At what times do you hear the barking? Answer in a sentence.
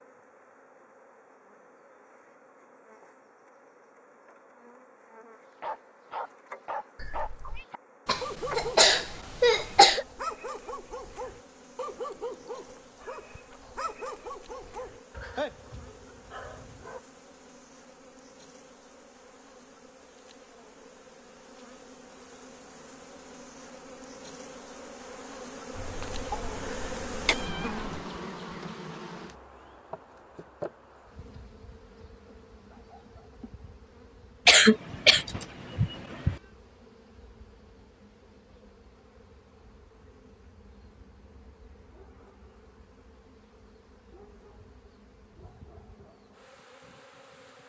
You can hear the barking from 5.6 to 17.0 s.